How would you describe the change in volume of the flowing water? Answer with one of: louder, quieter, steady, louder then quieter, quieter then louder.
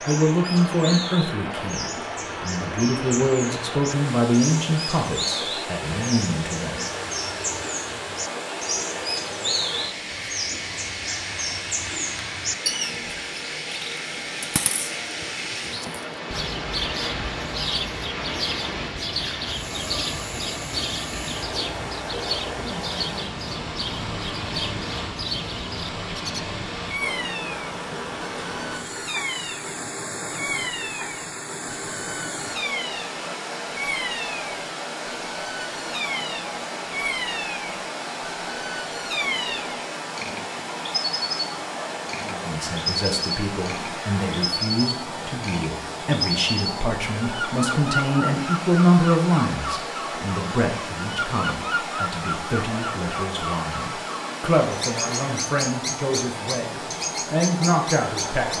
steady.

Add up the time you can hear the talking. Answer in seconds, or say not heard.
23 s.